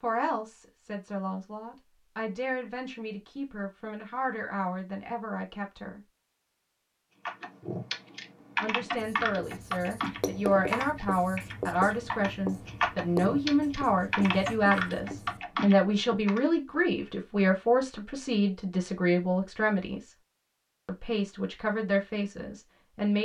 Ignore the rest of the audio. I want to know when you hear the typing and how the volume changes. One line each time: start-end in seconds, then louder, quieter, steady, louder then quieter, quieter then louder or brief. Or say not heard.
7.2-16.4 quieter then louder.